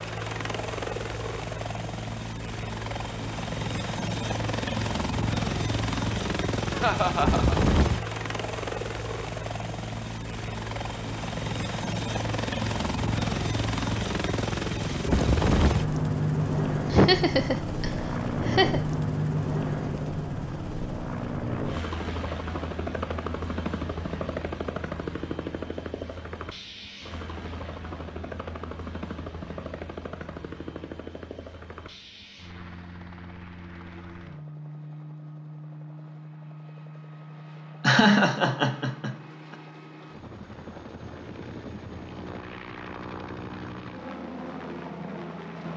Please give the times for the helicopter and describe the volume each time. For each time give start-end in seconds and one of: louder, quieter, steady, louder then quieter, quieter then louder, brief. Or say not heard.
0.0-45.7 quieter.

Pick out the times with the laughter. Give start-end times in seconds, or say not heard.
6.7-7.5, 16.9-18.8, 37.8-39.5.